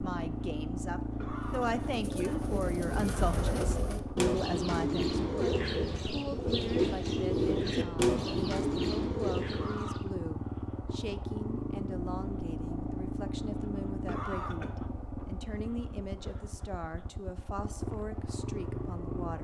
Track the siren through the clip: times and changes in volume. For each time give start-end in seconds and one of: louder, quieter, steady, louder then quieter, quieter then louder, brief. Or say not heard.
not heard.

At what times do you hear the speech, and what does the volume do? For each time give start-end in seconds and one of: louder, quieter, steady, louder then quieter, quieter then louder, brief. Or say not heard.
0.0-19.3 quieter.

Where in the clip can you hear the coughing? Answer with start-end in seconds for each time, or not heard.
1.2-3.5, 9.5-10.1, 14.1-14.7.